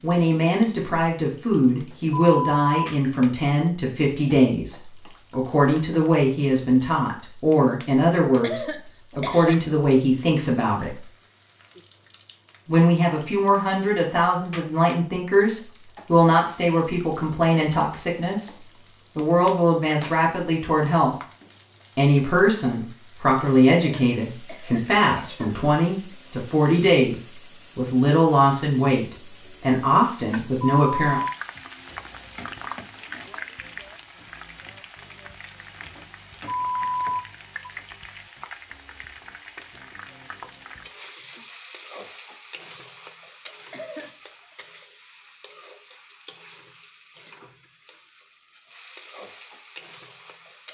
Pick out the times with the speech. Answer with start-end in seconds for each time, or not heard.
0.0-11.1, 12.7-18.5, 19.1-21.1, 21.9-31.2.